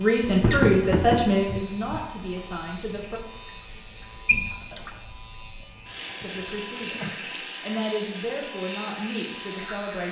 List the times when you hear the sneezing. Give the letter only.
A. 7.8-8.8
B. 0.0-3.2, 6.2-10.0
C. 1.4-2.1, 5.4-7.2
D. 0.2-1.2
C.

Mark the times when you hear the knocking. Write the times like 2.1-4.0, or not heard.
0.2-1.2.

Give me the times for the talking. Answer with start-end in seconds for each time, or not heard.
0.0-3.2, 6.2-10.0.